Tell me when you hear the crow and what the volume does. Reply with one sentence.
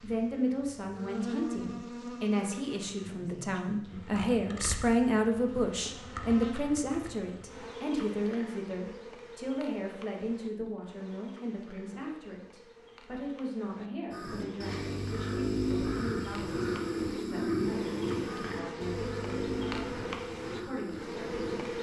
The crow can be heard from 14.1 to 21.7 s, getting quieter.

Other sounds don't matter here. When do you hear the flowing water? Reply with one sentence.
The flowing water can't be heard in this clip.